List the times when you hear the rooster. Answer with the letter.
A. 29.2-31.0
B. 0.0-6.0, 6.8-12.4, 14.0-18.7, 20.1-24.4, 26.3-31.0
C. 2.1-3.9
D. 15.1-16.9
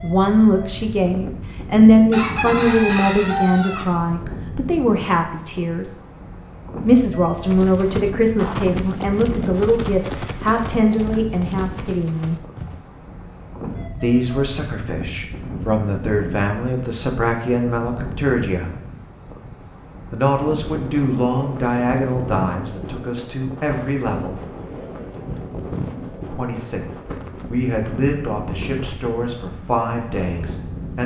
C.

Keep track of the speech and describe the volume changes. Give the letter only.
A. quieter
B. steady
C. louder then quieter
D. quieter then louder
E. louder
A.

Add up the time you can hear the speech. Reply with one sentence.
The speech can be heard for 25 seconds in total.